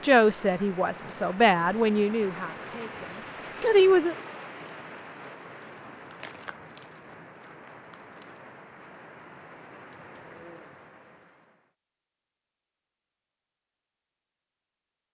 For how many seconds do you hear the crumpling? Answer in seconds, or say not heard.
2 s.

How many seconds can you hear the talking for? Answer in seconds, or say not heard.
4 s.